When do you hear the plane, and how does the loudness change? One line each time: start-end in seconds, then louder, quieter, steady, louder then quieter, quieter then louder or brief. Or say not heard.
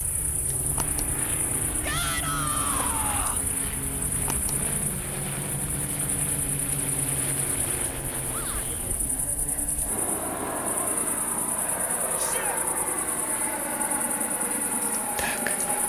0.0-15.8 steady.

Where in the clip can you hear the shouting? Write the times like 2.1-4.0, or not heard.
1.8-3.5, 8.2-8.8, 12.2-12.6.